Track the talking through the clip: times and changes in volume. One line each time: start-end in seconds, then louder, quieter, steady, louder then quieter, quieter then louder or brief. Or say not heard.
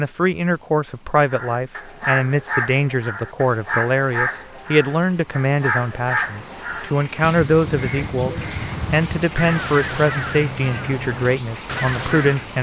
0.0-12.5 steady.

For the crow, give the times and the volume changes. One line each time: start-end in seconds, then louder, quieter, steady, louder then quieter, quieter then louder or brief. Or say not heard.
1.2-12.4 steady.